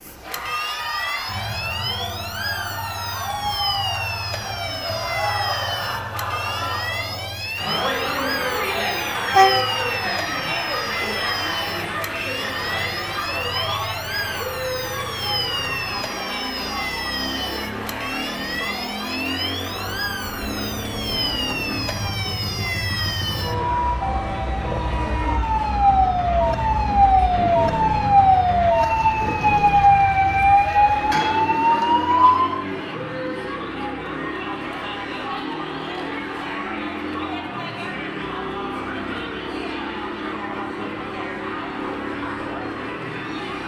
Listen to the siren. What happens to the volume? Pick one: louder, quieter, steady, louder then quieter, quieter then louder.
louder.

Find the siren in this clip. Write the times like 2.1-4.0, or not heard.
0.0-32.6.